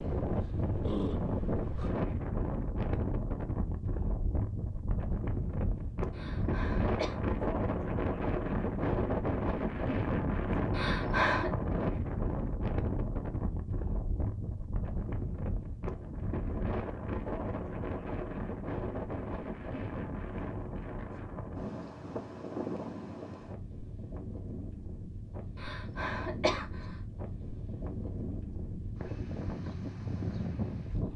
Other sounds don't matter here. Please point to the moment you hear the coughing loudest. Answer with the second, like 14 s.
11 s.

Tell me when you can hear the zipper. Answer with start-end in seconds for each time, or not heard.
not heard.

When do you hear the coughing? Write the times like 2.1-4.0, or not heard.
6.1-7.2, 10.7-11.5, 25.6-26.9.